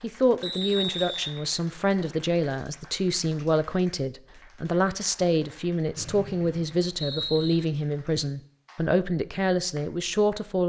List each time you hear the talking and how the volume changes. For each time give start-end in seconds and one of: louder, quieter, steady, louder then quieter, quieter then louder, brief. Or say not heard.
0.0-10.6 steady.